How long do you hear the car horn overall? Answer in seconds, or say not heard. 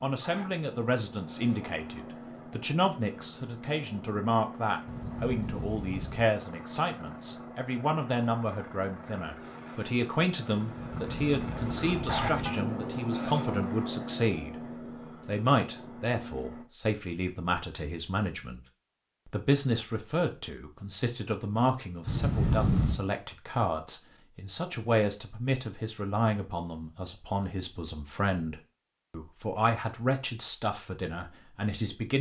4 s.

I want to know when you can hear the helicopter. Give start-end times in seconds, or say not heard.
0.0-16.6.